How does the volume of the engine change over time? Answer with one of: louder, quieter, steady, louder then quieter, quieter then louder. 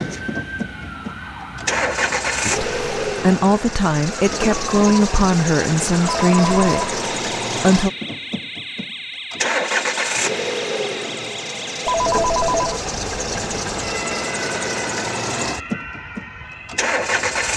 steady.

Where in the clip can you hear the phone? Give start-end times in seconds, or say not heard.
6.0-6.7, 11.8-12.8.